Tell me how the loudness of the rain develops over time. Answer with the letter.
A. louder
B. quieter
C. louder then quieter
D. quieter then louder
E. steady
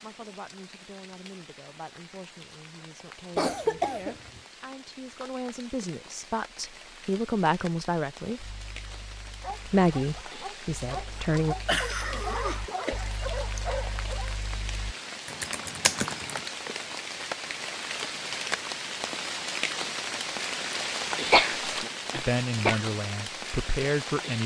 A.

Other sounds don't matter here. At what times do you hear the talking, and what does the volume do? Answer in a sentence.
The talking can be heard from 0.0 to 8.6 s, getting louder; briefly from 9.7 to 11.6 s; and briefly from 22.2 to 24.4 s.